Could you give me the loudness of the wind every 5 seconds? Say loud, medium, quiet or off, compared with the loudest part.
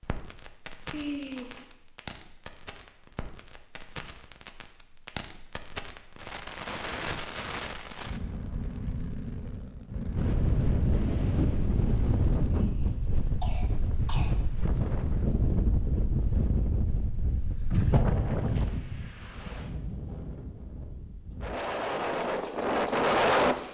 off, off, loud, loud, loud.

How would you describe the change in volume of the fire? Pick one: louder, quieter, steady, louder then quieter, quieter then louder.
louder.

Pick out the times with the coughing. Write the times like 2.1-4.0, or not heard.
0.9-1.6, 12.5-14.3.